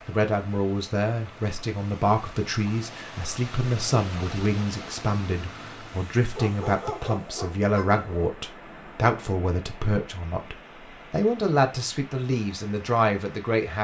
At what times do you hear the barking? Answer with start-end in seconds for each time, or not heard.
6.3-8.2.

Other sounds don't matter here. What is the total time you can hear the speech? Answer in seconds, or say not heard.
14 s.